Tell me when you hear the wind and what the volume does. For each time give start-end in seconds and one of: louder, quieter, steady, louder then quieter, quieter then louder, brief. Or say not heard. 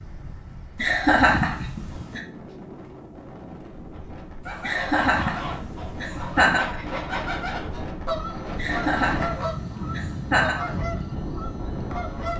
0.0-12.3 louder.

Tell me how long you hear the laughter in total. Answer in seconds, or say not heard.
6 s.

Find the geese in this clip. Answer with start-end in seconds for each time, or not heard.
4.4-12.3.